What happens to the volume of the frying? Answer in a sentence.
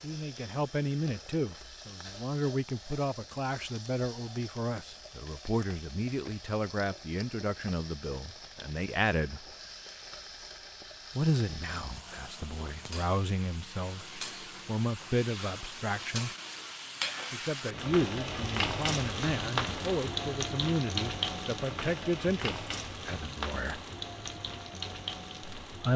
The loudness of the frying goes up.